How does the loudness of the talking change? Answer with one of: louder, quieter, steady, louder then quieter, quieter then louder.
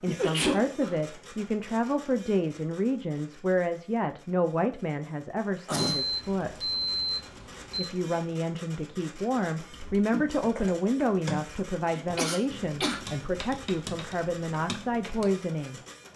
steady.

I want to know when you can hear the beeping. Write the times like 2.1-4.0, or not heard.
5.8-7.9.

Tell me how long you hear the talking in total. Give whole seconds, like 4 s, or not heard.
15 s.